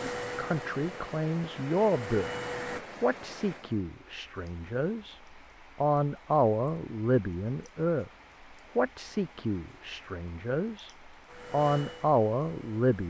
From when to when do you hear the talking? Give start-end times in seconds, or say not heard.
0.0-2.3, 3.0-5.2, 5.8-8.1, 8.8-10.9, 11.5-13.0.